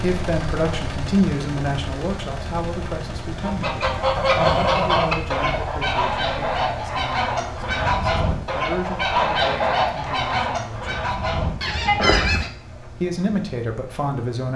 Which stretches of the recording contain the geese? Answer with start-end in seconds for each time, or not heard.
3.3-12.5.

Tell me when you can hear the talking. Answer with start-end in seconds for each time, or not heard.
0.0-11.2, 12.9-14.5.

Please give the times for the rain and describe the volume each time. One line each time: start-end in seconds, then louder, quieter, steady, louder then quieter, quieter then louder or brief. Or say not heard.
not heard.